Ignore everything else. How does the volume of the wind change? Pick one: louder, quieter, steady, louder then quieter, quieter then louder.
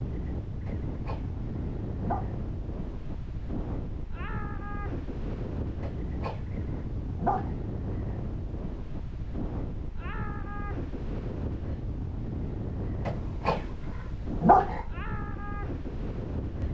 steady.